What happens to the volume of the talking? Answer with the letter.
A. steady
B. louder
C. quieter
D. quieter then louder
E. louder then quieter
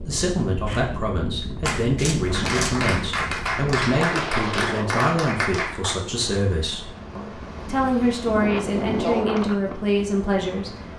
A.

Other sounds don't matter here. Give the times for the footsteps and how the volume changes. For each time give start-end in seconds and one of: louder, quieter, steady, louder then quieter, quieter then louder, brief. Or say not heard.
not heard.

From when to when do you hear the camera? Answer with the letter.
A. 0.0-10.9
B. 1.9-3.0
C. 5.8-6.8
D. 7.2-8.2
B.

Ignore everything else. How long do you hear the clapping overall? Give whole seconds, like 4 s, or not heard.
5 s.